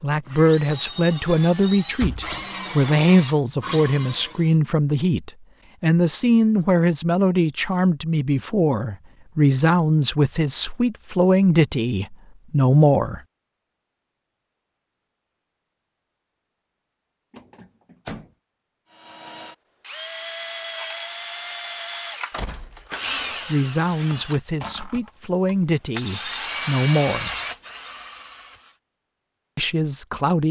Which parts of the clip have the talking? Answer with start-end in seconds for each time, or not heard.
0.0-13.2, 23.4-27.4, 29.6-30.4.